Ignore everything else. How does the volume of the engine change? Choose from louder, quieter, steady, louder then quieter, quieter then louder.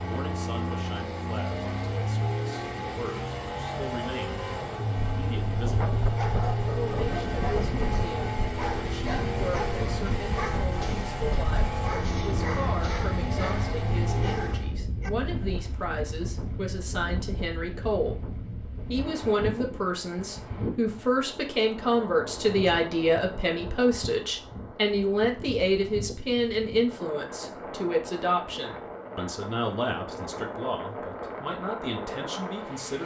steady.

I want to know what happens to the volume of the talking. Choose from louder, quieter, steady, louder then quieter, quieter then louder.
louder then quieter.